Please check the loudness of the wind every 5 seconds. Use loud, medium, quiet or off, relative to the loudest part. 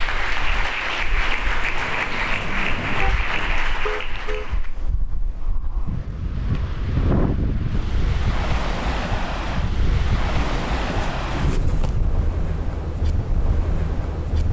medium, loud, loud.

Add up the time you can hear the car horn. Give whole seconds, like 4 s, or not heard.
3 s.